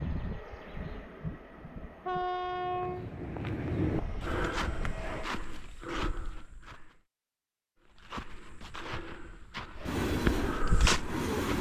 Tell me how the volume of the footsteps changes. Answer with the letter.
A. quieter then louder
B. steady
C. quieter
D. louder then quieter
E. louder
A.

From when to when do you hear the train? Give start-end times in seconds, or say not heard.
0.0-5.3, 9.8-11.5.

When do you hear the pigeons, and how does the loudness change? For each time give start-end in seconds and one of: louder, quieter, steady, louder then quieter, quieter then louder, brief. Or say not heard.
not heard.